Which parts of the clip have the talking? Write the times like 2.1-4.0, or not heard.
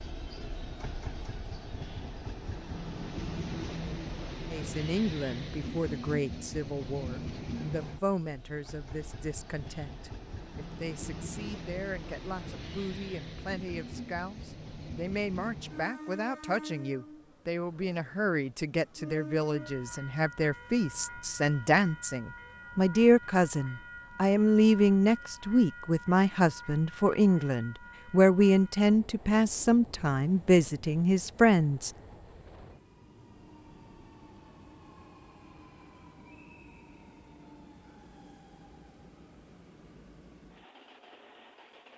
4.5-31.9.